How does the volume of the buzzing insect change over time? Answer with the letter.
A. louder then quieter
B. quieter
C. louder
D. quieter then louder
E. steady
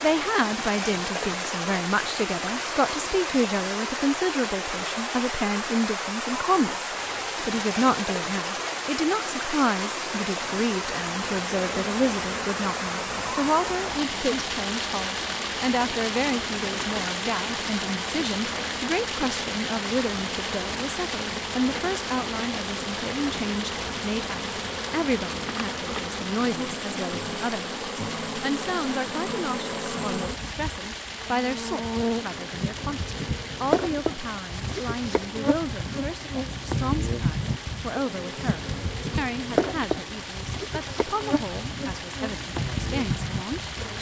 C.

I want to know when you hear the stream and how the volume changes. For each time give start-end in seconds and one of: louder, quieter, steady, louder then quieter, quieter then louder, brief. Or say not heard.
0.0-43.9 quieter.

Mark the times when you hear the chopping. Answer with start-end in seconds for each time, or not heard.
not heard.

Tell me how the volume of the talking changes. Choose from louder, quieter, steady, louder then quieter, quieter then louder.
quieter.